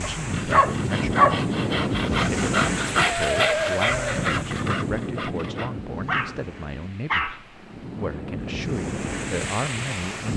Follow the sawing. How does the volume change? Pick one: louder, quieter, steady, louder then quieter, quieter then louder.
louder then quieter.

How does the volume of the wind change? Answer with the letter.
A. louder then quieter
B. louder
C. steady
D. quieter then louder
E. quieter
D.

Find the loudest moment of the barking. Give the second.
1 s.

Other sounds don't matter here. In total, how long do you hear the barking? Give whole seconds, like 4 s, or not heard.
4 s.